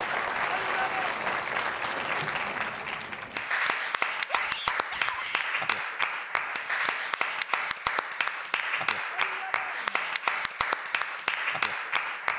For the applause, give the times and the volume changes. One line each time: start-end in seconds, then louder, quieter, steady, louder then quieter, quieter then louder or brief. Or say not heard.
0.0-12.3 steady.